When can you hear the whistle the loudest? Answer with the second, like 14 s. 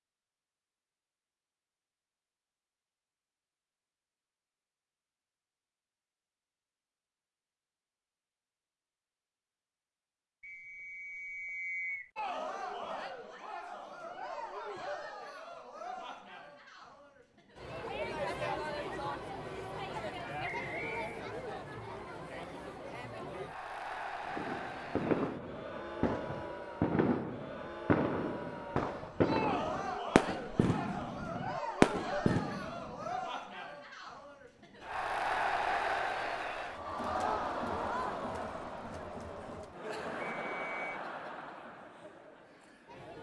12 s.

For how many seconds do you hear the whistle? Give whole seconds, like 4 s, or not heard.
3 s.